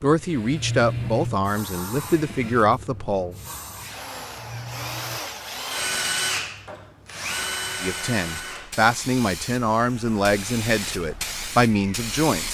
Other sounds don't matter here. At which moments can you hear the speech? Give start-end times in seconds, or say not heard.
0.0-3.4, 7.8-12.4.